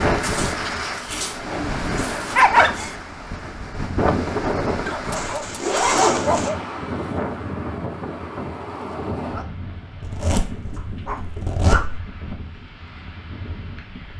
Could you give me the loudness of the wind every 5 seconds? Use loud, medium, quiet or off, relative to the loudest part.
loud, loud, quiet.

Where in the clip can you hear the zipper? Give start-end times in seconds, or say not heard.
0.2-2.4, 5.1-6.5, 10.0-12.0.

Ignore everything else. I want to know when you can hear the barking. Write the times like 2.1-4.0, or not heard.
1.4-3.0, 4.8-6.5, 10.8-11.9.